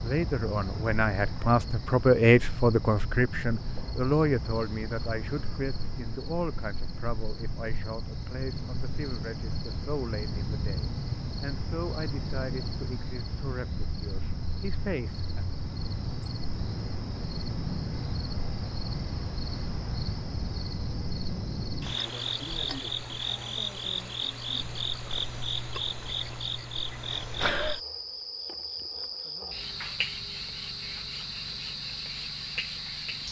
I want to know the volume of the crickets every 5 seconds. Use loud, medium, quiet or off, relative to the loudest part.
medium, medium, loud, loud, loud, loud, loud.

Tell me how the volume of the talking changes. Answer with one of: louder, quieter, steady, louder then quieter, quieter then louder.
quieter.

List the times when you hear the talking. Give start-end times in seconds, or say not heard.
0.0-15.4.